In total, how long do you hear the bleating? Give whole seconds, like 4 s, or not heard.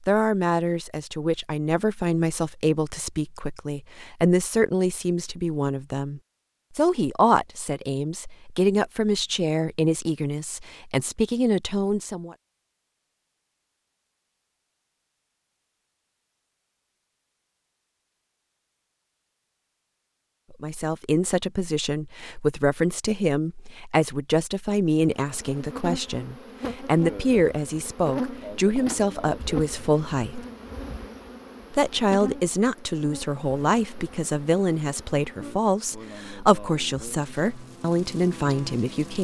not heard.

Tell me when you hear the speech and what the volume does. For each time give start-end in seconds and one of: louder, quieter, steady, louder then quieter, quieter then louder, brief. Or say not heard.
0.1-12.3 steady
20.5-30.4 steady
31.7-39.1 steady.